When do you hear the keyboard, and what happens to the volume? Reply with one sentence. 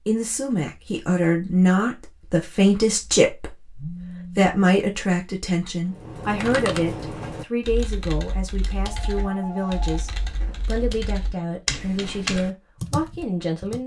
You can hear the keyboard from 5.9 to 13.8 s, getting quieter then louder.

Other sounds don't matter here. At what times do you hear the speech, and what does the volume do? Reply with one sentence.
You can hear the speech from 0.1 to 13.8 s, getting quieter.